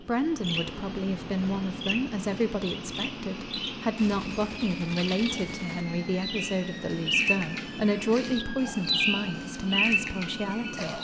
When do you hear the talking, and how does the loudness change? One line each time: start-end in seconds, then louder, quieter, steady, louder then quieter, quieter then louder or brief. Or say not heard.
0.0-10.9 steady.